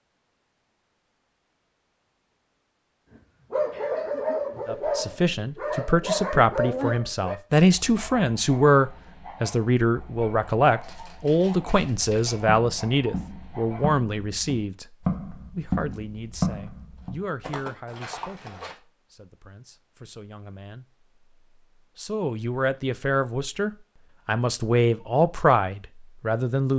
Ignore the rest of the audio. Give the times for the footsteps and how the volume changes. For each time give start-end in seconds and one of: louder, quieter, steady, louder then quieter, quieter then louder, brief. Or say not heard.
10.8-18.8 louder then quieter.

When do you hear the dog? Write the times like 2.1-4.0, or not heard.
3.1-13.9.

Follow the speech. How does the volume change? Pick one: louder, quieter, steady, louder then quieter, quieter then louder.
quieter then louder.